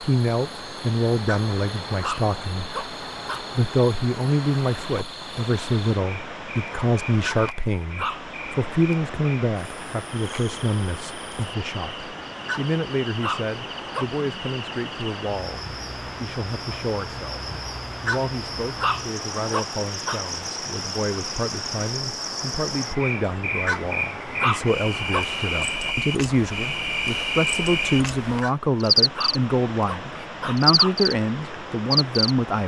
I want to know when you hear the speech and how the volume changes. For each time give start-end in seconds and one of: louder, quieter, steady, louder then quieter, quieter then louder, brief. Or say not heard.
0.0-2.8 brief
3.5-32.6 quieter then louder.